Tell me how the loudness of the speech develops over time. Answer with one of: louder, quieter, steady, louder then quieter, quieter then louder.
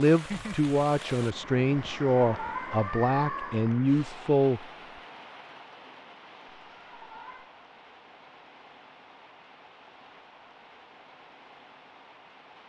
steady.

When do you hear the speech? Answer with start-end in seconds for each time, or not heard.
0.0-4.7.